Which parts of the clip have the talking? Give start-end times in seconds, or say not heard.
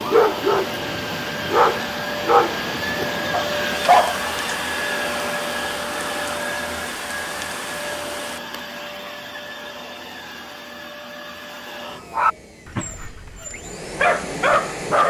not heard.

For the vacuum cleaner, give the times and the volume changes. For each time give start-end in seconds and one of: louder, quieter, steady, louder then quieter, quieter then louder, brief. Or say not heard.
0.0-15.0 quieter.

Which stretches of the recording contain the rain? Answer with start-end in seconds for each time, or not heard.
0.0-8.4.